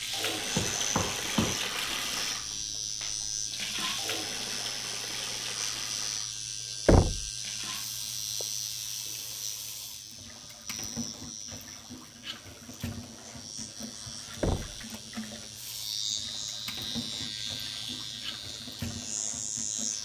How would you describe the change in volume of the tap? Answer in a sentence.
The volume of the tap goes down.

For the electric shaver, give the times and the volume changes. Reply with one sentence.
The electric shaver can be heard from 0.0 to 20.0 s, getting quieter then louder.